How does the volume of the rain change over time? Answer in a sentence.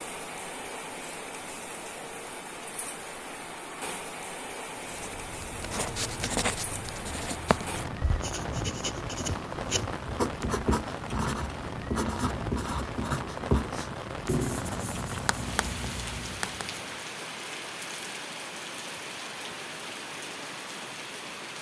The volume of the rain stays about the same.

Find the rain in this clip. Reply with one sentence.
You can hear the rain from 0.0 to 21.5 s.